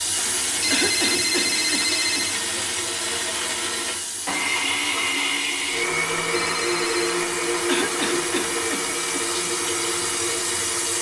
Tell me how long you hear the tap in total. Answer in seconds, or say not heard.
11 s.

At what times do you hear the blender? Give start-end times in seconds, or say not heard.
0.0-10.9.